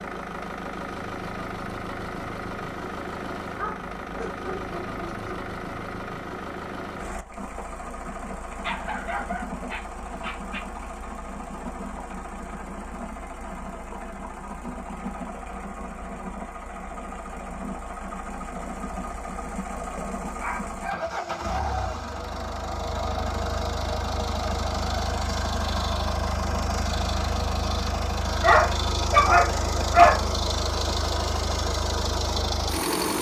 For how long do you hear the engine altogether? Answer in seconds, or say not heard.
33 s.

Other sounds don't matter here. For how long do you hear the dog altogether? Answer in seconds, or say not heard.
7 s.